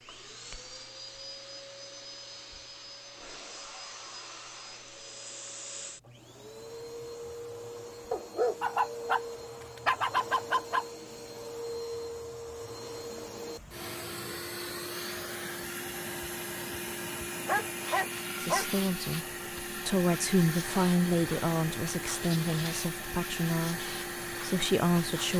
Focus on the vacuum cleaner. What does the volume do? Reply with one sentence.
The volume of the vacuum cleaner goes up.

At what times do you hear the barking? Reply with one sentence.
You can hear the barking from 8.1 to 10.8 s and from 17.4 to 18.7 s.